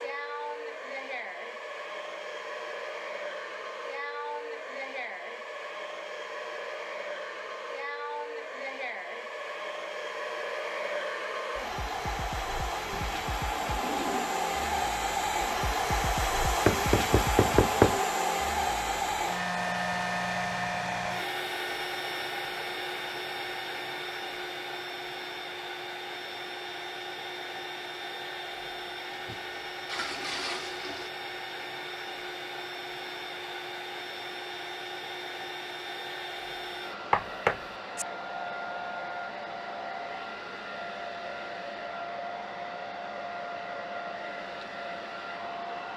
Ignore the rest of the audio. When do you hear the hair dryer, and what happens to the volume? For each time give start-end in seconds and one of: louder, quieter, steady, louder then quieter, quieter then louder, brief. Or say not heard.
0.0-45.9 louder then quieter.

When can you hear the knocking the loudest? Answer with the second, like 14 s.
18 s.